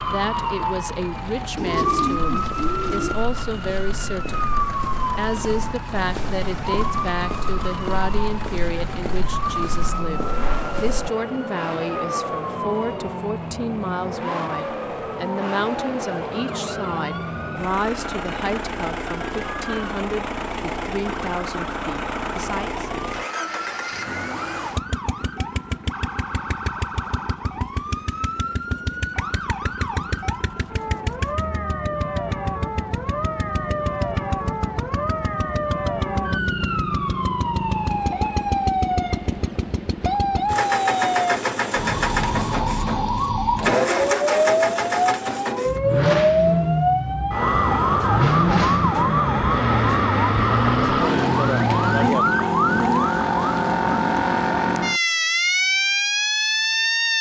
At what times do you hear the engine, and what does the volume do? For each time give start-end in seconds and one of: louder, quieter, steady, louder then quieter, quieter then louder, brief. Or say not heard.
0.0-52.1 louder.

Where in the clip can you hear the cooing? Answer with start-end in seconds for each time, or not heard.
1.6-3.1, 51.6-53.1.